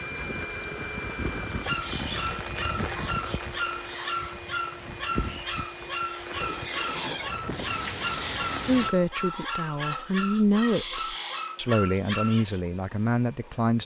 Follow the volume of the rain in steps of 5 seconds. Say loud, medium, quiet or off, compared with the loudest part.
loud, loud, off.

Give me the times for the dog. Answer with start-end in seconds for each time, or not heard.
1.5-12.6.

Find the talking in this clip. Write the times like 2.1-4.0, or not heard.
8.7-13.8.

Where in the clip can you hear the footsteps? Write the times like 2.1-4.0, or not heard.
not heard.